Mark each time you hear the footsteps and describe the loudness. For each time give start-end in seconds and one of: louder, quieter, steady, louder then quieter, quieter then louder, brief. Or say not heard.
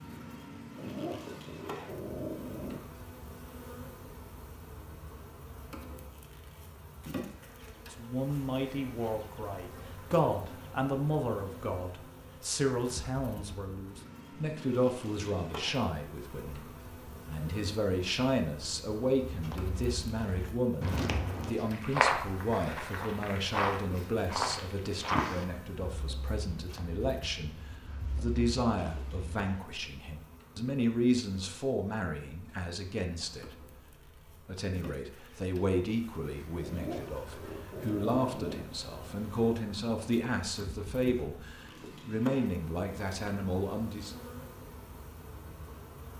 19.2-29.4 louder then quieter.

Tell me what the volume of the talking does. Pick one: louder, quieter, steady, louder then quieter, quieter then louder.
steady.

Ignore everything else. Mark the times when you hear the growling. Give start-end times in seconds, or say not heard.
0.8-2.8, 36.6-38.6.